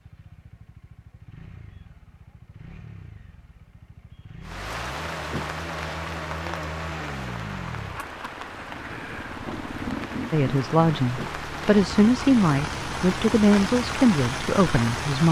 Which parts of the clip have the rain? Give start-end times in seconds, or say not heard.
4.4-15.2.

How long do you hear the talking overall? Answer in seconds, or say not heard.
5 s.